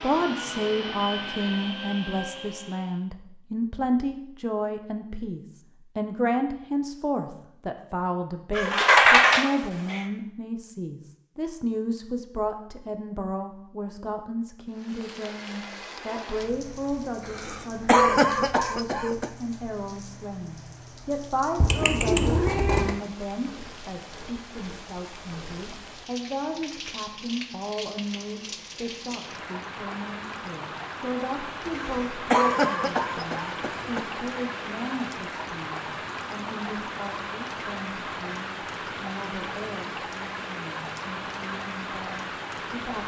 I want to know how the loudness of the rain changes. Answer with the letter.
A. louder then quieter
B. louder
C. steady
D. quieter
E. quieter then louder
B.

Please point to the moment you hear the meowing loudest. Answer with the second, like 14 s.
9 s.